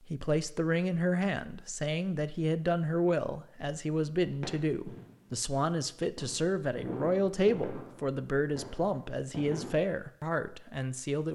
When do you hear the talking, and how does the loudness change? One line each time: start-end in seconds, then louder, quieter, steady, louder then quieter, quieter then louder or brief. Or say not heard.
0.1-11.2 steady.